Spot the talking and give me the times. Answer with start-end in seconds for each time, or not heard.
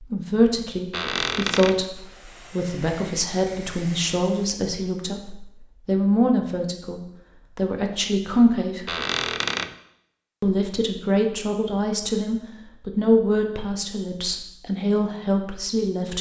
0.0-8.9, 10.4-16.1.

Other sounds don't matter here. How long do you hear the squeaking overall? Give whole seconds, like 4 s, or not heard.
2 s.